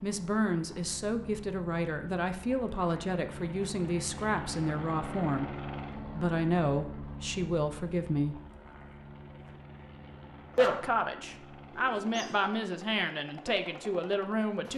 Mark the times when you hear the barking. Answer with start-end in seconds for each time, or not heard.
10.6-11.3, 11.9-12.4.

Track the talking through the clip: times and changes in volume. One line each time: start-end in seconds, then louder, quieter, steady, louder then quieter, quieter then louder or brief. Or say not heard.
0.0-8.4 steady
10.6-14.7 steady.